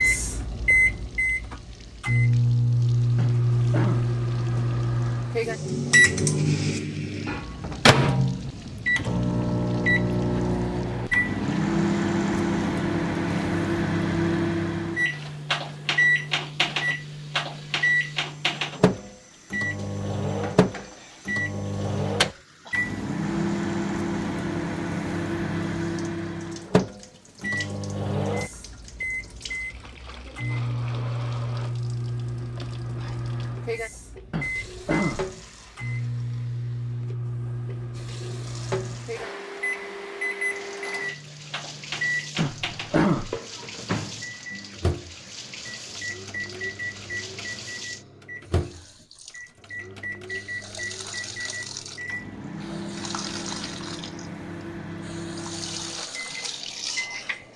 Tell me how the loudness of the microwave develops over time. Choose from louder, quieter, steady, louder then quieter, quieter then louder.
quieter.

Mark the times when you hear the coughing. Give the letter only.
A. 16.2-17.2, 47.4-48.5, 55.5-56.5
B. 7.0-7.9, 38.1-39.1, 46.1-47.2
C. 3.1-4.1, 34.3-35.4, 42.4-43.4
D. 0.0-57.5
C.